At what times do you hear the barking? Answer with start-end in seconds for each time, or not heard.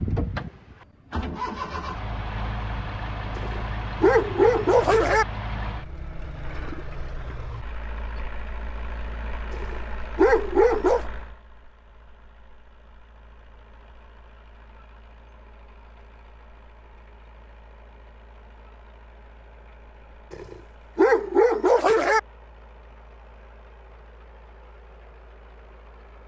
3.4-5.2, 9.5-11.1, 20.3-22.2.